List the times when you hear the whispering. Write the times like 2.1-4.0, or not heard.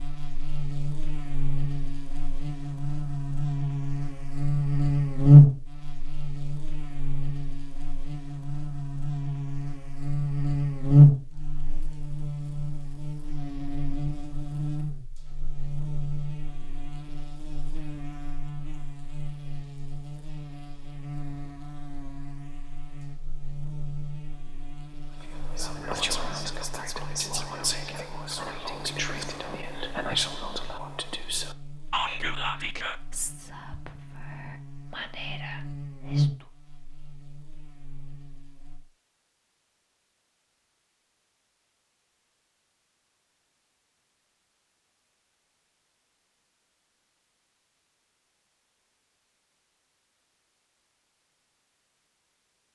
25.2-36.5.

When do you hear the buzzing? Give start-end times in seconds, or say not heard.
0.0-38.8.